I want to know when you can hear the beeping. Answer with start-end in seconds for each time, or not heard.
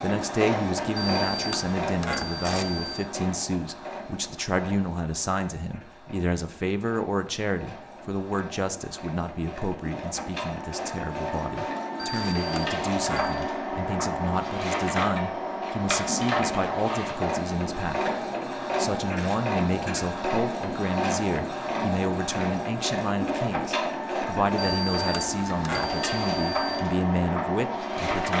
0.9-3.1, 11.9-13.4, 24.6-26.9.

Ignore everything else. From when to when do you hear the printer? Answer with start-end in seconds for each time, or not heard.
0.0-28.3.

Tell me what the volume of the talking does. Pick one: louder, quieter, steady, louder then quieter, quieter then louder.
steady.